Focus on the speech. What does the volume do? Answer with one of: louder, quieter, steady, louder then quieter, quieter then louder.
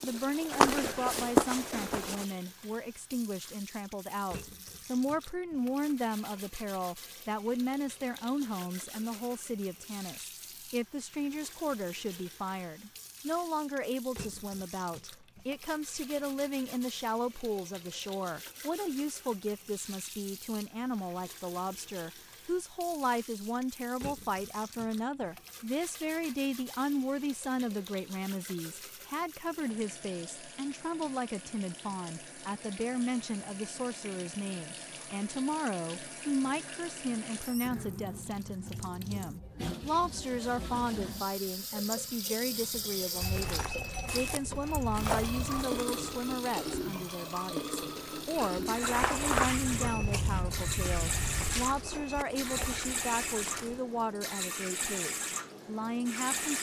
steady.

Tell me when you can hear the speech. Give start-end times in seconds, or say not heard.
0.0-56.5.